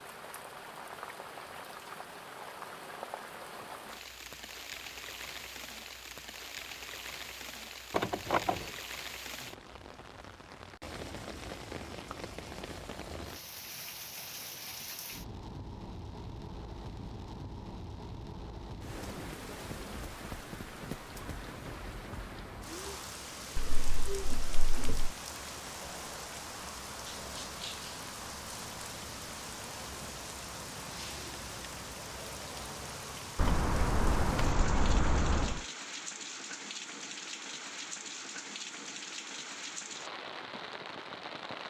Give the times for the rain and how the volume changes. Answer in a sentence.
You can hear the rain from 0.0 to 41.6 s, at a steady volume.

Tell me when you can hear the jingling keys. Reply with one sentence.
The jingling keys can be heard from 7.9 to 8.7 s, from 23.6 to 25.1 s and from 33.4 to 35.6 s.